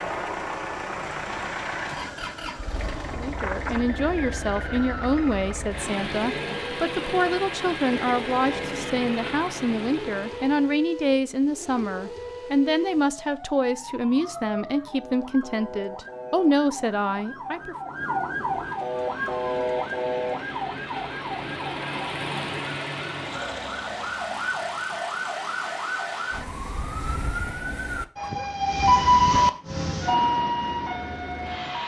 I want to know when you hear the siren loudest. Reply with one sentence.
The volume of the siren peaks at 29 seconds.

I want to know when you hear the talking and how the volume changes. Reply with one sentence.
You can hear the talking from 3.1 to 17.8 s, at a steady volume.